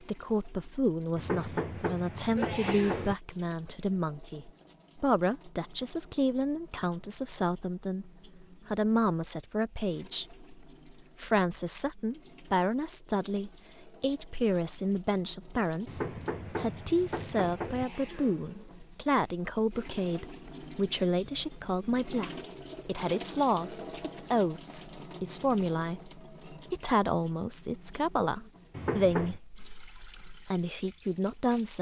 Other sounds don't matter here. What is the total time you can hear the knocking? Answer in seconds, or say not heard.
5 s.